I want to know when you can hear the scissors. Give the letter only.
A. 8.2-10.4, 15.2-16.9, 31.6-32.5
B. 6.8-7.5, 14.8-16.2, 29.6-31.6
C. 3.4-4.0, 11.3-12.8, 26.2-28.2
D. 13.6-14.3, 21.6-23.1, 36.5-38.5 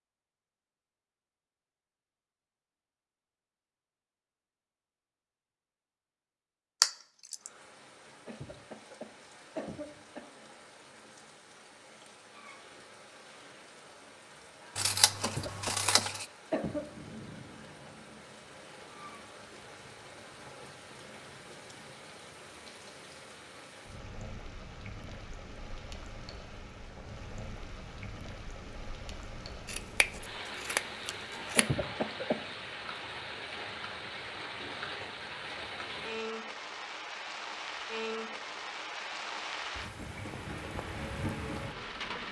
B.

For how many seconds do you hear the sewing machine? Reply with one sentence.
You can't hear the sewing machine here.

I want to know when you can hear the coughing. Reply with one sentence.
You can hear the coughing from 8.2 to 10.4 s, from 15.2 to 16.9 s and from 31.6 to 32.5 s.